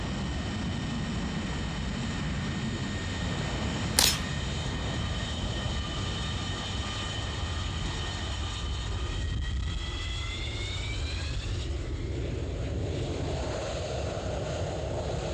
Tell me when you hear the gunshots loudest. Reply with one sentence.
The volume of the gunshots peaks at 4 seconds.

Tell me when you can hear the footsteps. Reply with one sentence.
The footsteps can't be heard in this clip.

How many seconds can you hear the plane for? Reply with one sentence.
The plane can be heard for 15 seconds in total.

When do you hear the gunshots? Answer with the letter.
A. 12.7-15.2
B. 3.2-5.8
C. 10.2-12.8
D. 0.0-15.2
B.